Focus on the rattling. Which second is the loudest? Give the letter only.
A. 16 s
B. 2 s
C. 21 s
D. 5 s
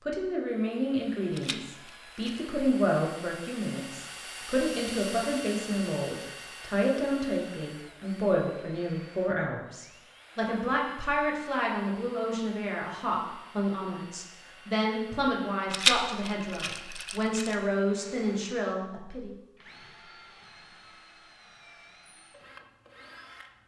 A.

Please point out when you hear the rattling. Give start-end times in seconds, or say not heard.
1.3-2.5, 15.7-17.6.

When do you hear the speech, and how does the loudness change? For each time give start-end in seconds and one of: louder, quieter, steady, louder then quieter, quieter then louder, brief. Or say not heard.
0.0-19.4 steady.